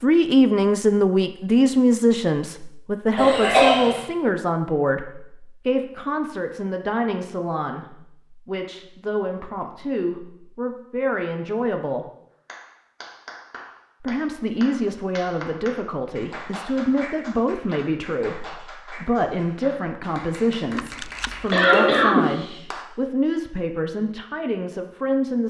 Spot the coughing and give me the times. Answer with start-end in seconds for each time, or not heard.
3.1-4.0, 21.5-22.4.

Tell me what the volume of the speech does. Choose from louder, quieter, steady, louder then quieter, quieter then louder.
quieter.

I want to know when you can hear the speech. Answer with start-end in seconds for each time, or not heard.
0.0-12.1, 14.0-25.4.